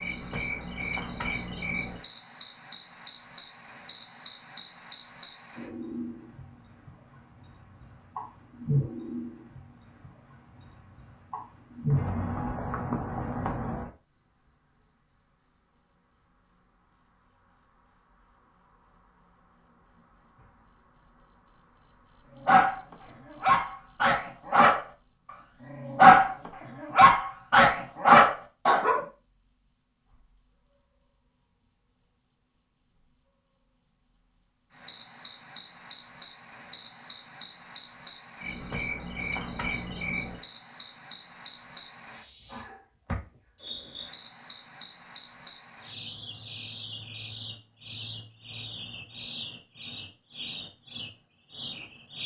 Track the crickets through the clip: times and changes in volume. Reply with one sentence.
You can hear the crickets from 0.0 to 52.2 s, getting louder then quieter.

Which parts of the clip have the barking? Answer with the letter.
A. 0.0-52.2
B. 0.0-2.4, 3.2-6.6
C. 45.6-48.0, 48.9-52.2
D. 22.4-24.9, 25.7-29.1
D.